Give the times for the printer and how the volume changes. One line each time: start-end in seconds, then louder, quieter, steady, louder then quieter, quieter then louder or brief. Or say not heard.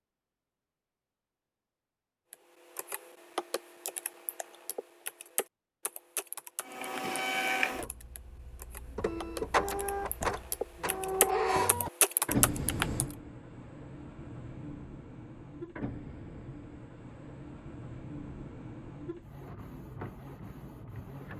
6.6-21.3 quieter.